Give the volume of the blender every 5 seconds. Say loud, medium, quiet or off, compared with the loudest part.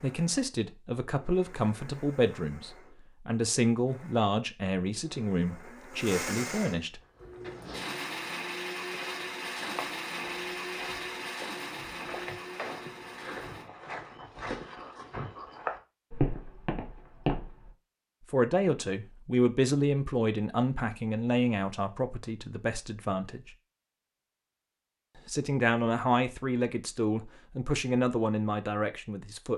quiet, loud, loud, off, off, off.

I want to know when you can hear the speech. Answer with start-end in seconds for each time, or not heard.
0.0-7.0, 18.3-23.6, 25.1-29.5.